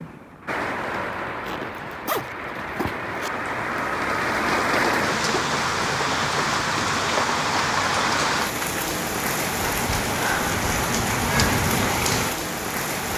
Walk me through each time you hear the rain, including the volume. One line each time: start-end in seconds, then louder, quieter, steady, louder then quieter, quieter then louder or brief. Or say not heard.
0.0-13.1 louder.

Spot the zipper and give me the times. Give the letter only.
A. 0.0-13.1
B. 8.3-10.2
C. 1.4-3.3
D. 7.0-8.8
C.